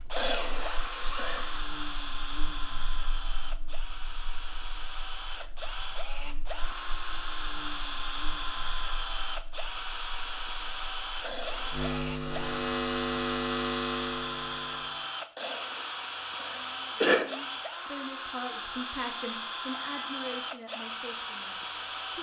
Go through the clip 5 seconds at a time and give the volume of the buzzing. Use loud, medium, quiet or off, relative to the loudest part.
quiet, quiet, loud, off, off.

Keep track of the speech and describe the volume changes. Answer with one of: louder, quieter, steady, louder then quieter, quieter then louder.
louder then quieter.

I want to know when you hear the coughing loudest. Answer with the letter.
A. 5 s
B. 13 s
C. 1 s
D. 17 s
D.